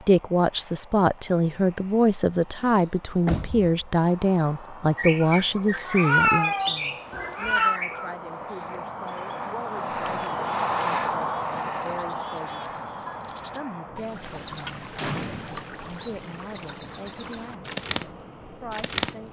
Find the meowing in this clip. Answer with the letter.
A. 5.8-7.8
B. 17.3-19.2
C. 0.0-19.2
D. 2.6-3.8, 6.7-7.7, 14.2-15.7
A.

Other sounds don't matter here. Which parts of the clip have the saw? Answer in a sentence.
The saw can't be heard in this clip.